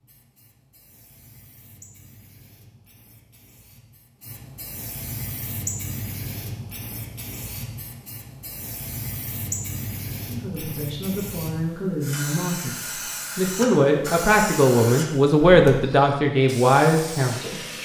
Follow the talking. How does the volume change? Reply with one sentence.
The loudness of the talking goes up.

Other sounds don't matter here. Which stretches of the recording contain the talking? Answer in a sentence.
You can hear the talking from 10.2 to 17.6 s.